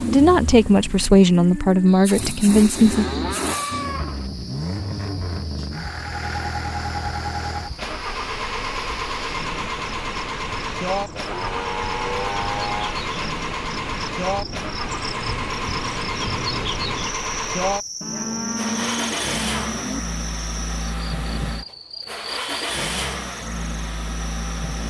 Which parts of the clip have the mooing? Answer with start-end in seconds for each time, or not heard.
2.7-4.3, 11.1-12.9, 18.0-20.0.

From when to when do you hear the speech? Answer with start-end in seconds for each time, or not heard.
0.0-3.0.